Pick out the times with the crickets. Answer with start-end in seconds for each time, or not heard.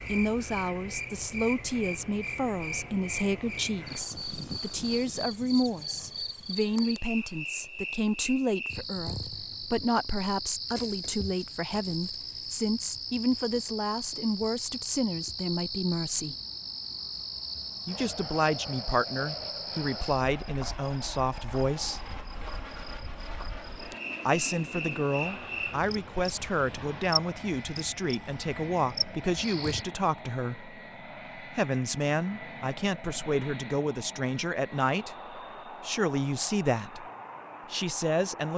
0.0-29.9.